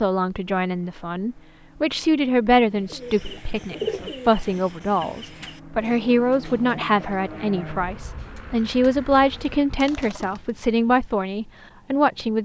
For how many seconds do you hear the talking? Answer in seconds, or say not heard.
12 s.